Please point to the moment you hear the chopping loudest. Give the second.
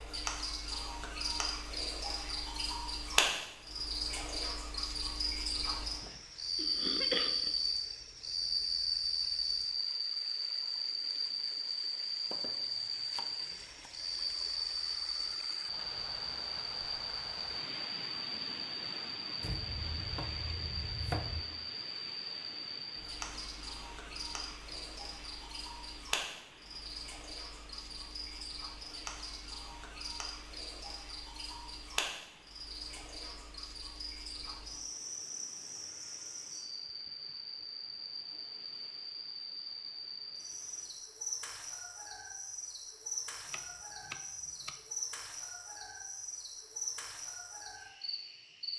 21 s.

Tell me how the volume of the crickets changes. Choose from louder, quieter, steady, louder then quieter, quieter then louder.
quieter.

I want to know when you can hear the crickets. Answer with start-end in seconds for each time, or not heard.
0.0-48.7.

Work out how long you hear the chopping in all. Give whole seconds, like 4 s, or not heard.
5 s.